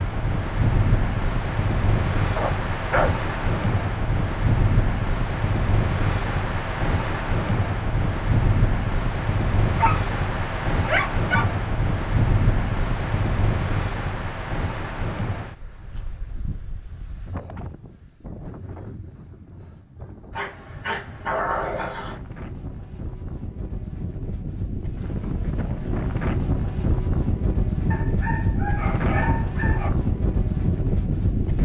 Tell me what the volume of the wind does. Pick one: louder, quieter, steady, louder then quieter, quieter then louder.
quieter then louder.